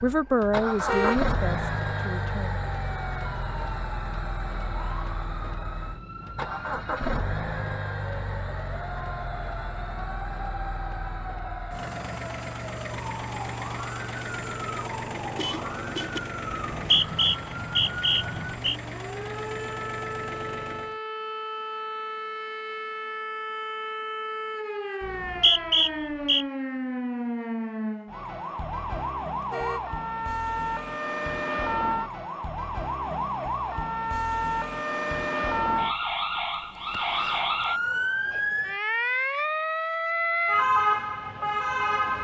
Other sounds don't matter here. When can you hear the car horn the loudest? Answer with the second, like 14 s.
1 s.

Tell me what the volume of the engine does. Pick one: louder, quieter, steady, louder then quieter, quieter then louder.
quieter.